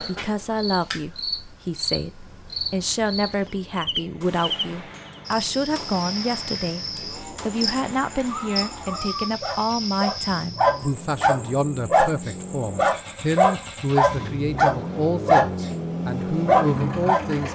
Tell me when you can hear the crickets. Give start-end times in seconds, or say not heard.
0.0-13.8.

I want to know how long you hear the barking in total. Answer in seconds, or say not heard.
8 s.